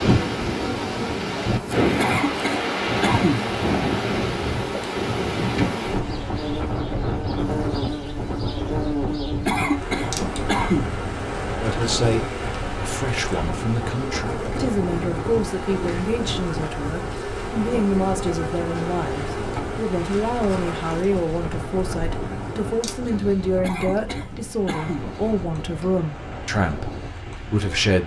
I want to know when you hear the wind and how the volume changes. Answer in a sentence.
The wind can be heard from 0.0 to 28.0 s, getting quieter.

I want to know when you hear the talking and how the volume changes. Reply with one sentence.
The talking can be heard from 11.6 to 28.0 s, at a steady volume.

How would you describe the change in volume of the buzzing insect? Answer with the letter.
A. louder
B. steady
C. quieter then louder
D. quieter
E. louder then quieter
D.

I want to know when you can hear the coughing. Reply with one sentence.
You can hear the coughing from 1.9 to 3.5 s, from 9.4 to 10.9 s and from 23.6 to 25.1 s.